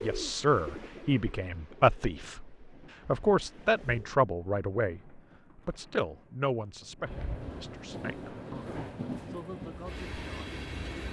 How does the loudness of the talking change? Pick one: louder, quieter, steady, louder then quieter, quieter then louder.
quieter.